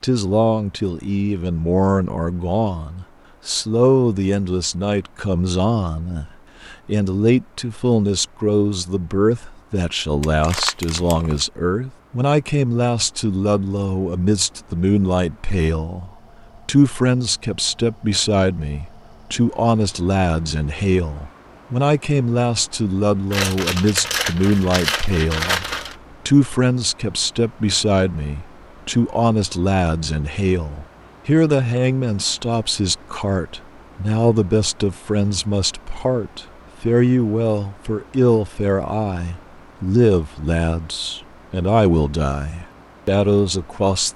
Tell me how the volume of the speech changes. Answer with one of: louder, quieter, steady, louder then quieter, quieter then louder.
steady.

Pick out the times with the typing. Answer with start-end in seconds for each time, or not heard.
not heard.